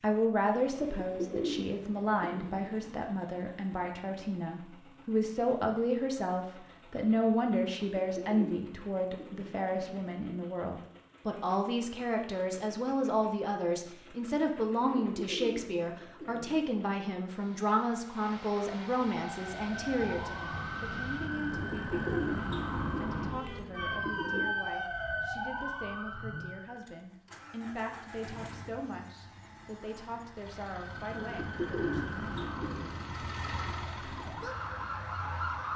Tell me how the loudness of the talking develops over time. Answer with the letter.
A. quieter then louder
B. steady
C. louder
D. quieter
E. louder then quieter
D.